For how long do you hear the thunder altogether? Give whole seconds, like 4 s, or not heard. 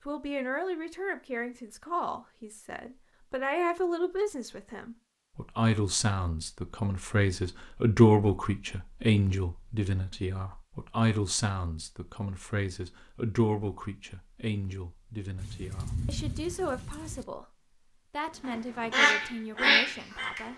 2 s.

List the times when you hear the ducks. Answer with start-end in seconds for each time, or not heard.
18.4-20.4.